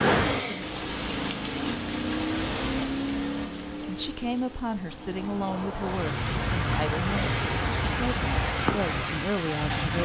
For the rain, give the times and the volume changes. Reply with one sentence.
You can hear the rain from 0.0 to 9.9 s, getting quieter then louder.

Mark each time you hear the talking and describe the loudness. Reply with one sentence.
The talking can be heard from 3.8 to 9.9 s, at a steady volume.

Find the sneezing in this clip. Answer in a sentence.
You can hear the sneezing from 0.1 to 0.7 s and from 7.0 to 7.6 s.